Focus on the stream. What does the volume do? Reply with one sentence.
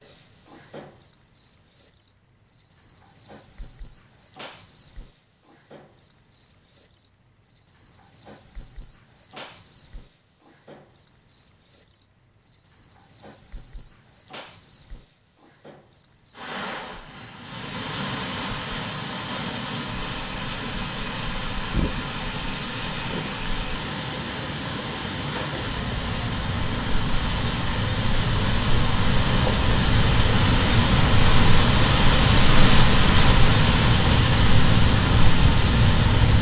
The loudness of the stream goes up.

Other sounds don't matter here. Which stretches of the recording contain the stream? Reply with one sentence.
The stream can be heard from 16.4 to 36.3 s.